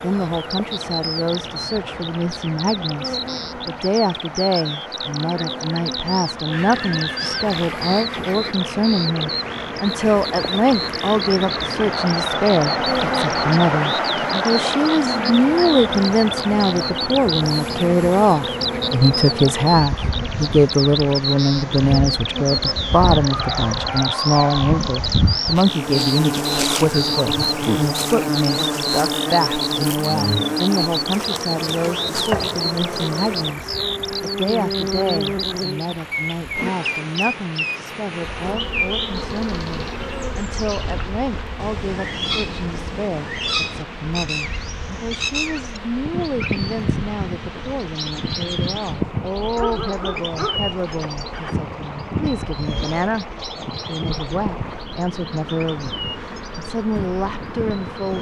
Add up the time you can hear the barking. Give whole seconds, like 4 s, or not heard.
4 s.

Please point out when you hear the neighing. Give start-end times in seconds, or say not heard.
6.5-8.6.